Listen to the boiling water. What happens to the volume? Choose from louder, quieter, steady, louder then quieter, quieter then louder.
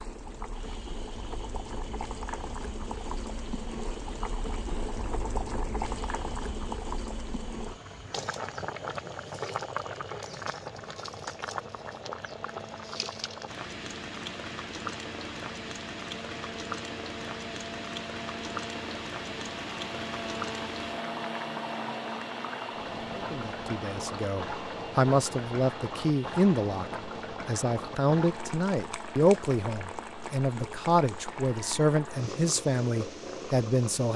steady.